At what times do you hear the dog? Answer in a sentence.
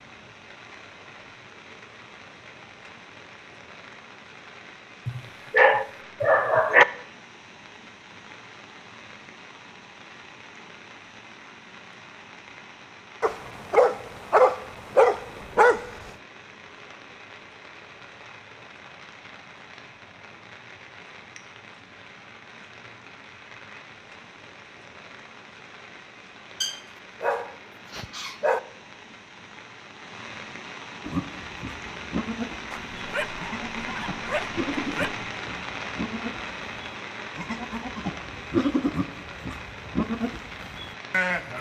The dog can be heard from 5.0 to 6.8 s, from 13.2 to 15.8 s, from 26.6 to 28.6 s and from 32.7 to 35.2 s.